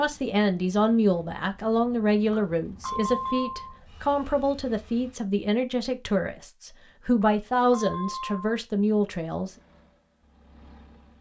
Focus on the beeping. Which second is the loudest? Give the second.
3 s.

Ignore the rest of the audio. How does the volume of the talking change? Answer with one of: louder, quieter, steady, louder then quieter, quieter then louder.
steady.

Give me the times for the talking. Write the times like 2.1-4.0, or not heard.
0.0-9.6.